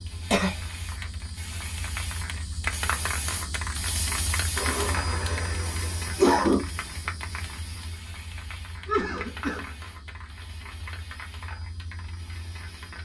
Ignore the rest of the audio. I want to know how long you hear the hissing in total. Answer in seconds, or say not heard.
13 s.